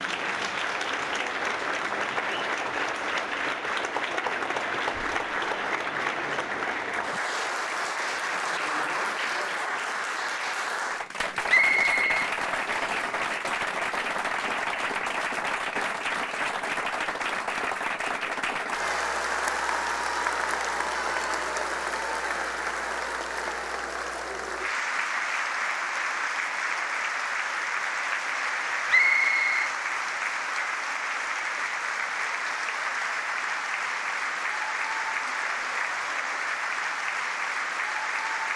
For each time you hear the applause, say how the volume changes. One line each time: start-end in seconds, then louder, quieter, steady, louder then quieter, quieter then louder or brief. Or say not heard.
0.0-38.5 steady.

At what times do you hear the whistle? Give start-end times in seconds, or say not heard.
11.4-13.1, 28.9-29.7.